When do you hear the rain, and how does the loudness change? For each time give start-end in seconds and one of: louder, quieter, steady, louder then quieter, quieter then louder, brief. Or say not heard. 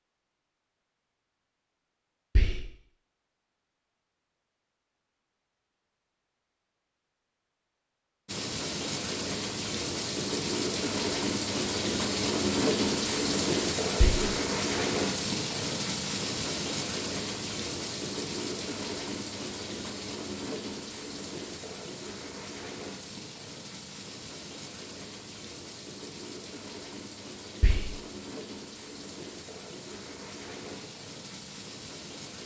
8.2-32.4 quieter.